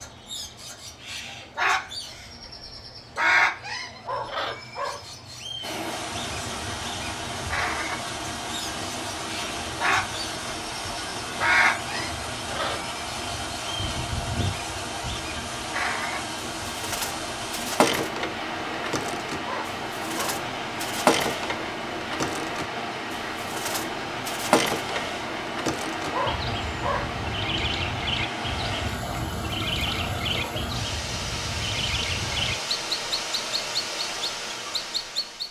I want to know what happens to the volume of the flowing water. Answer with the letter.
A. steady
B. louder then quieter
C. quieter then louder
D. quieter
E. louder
A.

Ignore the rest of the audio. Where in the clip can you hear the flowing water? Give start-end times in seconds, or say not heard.
5.6-35.4.